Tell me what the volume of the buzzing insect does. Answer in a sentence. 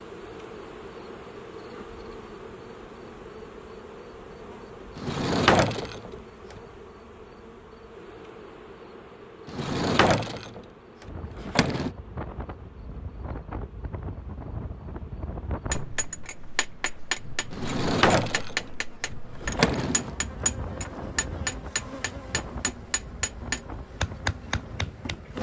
The loudness of the buzzing insect goes down, then up.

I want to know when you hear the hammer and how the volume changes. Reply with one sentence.
You can hear the hammer from 15.7 to 25.2 s, at a steady volume.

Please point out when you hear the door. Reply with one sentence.
You can hear the door from 5.0 to 6.6 s, from 9.4 to 11.9 s and from 17.5 to 20.1 s.